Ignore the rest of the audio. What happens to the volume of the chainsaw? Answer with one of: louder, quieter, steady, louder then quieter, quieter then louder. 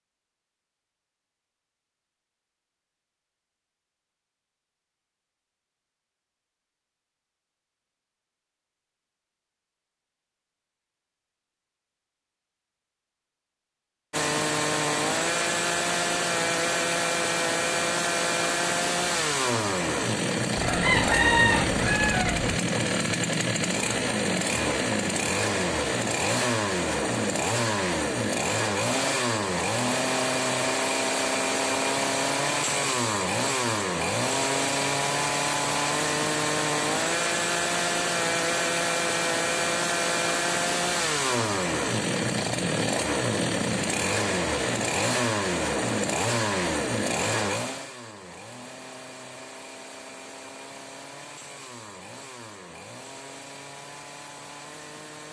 quieter.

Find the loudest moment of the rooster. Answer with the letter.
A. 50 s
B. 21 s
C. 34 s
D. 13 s
B.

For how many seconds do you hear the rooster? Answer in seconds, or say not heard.
2 s.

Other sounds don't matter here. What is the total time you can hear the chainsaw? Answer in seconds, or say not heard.
41 s.